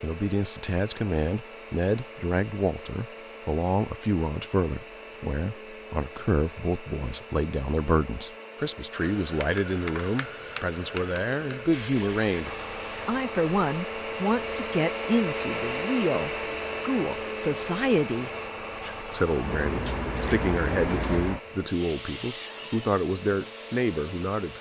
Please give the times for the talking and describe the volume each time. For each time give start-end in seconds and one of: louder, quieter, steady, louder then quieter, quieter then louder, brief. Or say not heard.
0.0-24.5 steady.